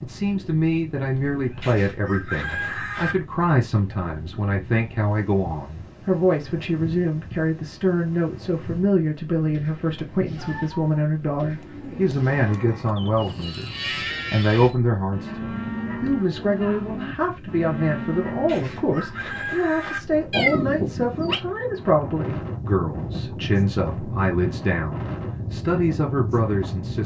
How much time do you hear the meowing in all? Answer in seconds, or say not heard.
2 s.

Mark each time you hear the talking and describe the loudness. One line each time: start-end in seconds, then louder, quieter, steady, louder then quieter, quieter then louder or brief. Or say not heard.
0.0-27.0 steady.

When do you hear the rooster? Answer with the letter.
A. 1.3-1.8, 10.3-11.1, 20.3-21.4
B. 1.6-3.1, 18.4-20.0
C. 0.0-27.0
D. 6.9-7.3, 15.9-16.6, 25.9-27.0
B.